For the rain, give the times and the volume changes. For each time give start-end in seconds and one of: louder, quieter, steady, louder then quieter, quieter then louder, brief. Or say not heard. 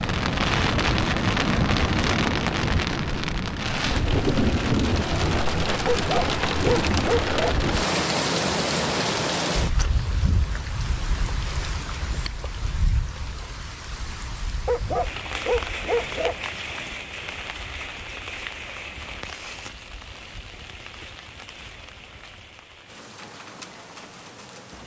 0.0-24.8 quieter.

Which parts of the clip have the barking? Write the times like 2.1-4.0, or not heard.
5.8-7.5, 14.7-16.4.